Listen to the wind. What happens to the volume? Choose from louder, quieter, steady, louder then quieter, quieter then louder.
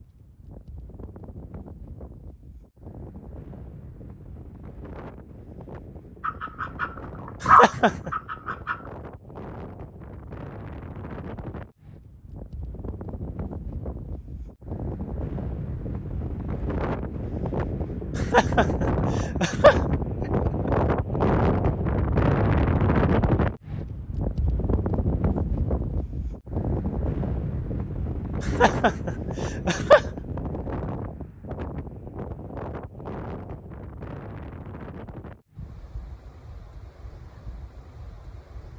louder then quieter.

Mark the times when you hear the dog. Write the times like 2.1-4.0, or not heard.
6.2-8.8.